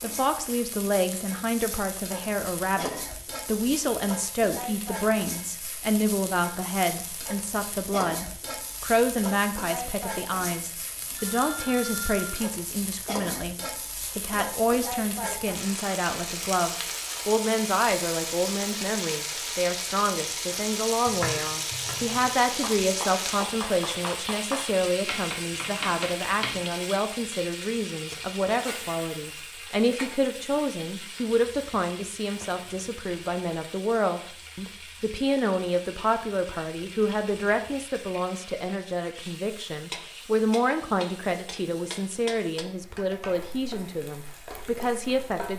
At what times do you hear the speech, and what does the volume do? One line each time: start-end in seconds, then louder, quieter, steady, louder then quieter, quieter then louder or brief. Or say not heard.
0.0-45.5 steady.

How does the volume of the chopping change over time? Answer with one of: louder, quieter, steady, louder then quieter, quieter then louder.
louder.